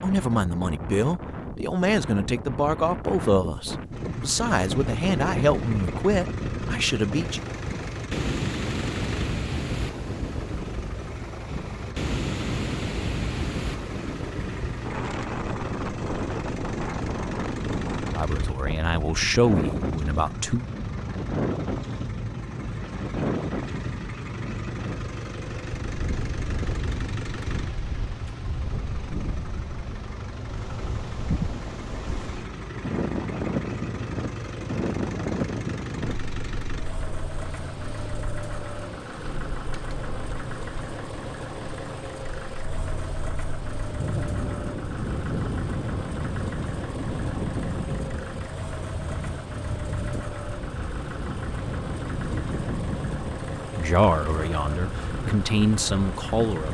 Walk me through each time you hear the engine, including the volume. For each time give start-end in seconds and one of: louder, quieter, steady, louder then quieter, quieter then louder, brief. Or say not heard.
3.9-56.6 steady.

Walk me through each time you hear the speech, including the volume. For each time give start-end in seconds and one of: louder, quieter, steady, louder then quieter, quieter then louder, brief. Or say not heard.
0.0-7.5 steady
18.1-20.6 brief
53.8-56.6 brief.